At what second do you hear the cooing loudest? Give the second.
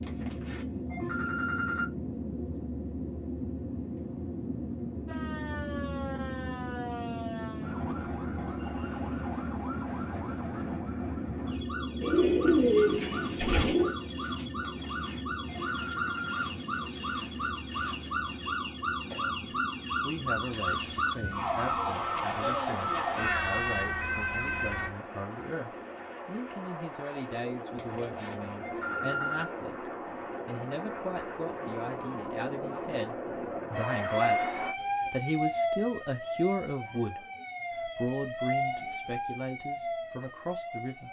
13 s.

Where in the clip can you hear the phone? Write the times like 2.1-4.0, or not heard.
0.1-1.9, 14.6-16.4, 27.8-29.6.